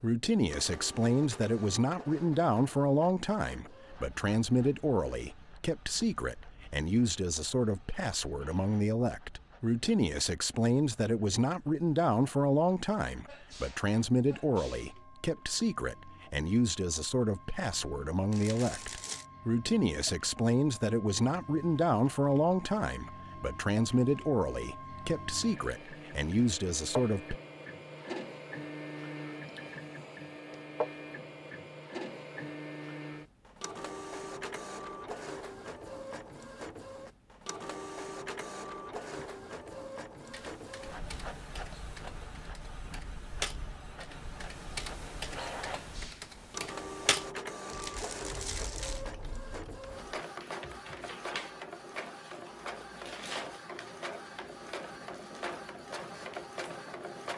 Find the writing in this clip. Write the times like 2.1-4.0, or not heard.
not heard.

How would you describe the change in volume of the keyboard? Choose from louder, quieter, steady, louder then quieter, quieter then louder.
louder then quieter.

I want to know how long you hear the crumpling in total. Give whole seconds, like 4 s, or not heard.
2 s.